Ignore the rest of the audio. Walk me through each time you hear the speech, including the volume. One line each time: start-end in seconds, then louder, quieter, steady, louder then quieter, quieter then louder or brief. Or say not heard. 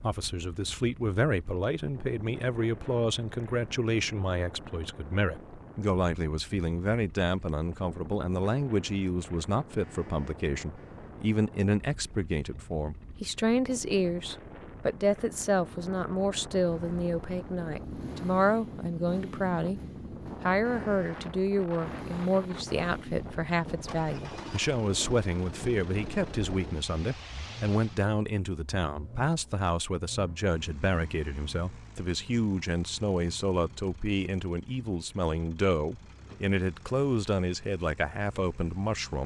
0.0-19.8 steady
20.4-39.2 steady.